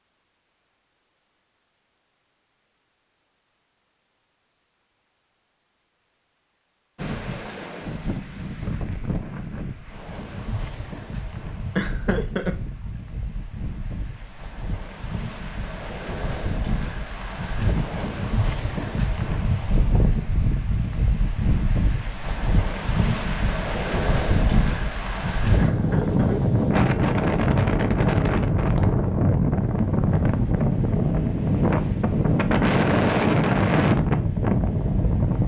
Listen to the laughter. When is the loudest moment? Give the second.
12 s.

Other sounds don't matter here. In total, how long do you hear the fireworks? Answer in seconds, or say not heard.
not heard.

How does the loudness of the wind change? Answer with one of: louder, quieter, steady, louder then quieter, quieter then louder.
louder.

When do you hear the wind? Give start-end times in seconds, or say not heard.
7.0-35.4.